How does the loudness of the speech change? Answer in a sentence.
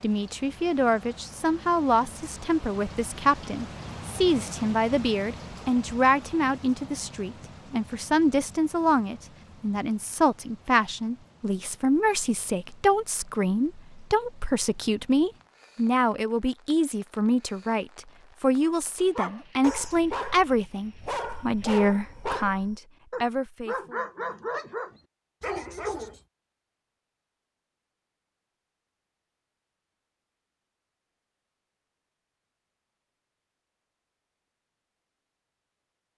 The loudness of the speech stays about the same.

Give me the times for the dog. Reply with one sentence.
You can hear the dog from 18.6 to 26.2 s.